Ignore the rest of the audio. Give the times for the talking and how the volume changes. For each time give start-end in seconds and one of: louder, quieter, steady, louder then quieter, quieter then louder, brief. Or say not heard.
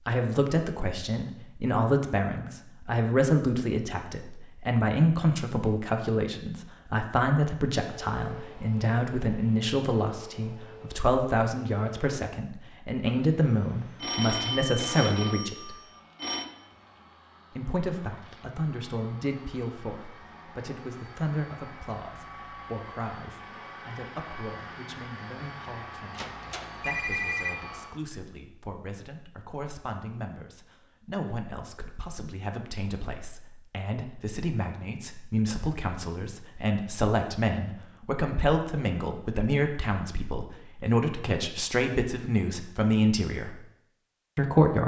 0.1-15.8 steady
17.6-43.6 quieter then louder
44.4-44.8 brief.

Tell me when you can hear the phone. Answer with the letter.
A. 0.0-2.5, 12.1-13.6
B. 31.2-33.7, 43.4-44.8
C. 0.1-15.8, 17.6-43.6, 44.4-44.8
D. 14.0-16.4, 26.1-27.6
D.